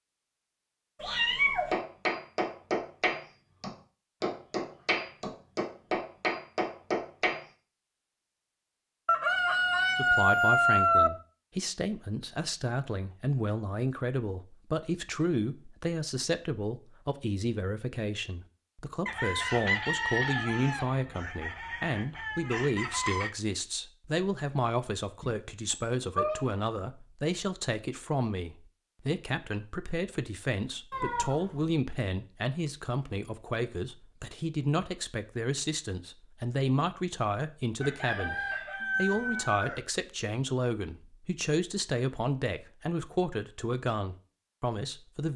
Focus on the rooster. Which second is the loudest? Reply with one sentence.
The loudest moment of the rooster is at 11 seconds.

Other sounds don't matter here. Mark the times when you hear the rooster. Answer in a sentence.
You can hear the rooster from 9.1 to 11.1 s, from 19.1 to 23.3 s and from 37.8 to 39.8 s.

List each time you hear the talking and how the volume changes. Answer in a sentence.
You can hear the talking from 9.9 to 45.3 s, at a steady volume.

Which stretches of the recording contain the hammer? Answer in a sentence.
You can hear the hammer from 1.4 to 7.5 s.